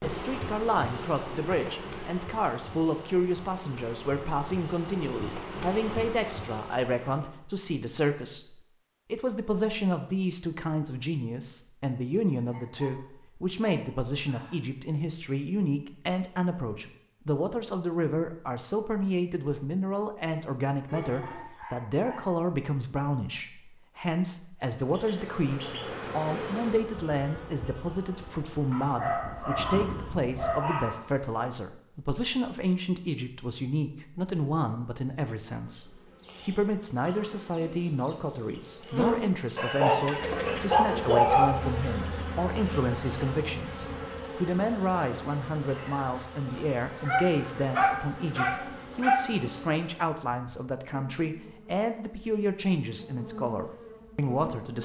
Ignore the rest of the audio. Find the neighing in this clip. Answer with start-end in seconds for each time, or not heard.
20.9-21.6.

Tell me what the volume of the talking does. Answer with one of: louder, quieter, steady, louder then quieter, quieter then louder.
steady.